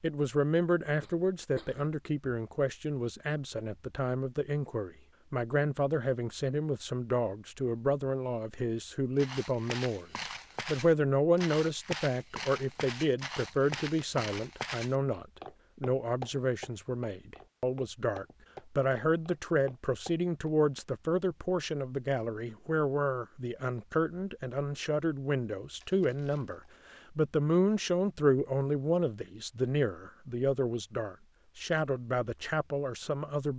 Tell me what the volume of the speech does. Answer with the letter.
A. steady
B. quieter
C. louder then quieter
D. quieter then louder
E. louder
A.